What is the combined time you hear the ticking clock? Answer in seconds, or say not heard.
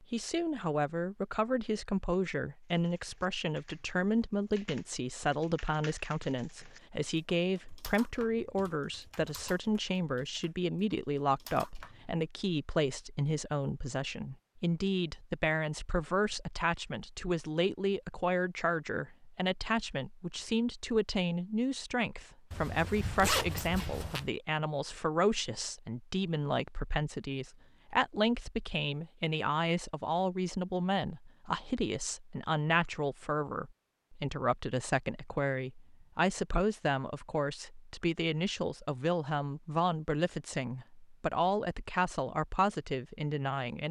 not heard.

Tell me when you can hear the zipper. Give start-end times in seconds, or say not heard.
22.5-24.3.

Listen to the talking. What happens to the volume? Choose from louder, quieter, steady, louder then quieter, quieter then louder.
steady.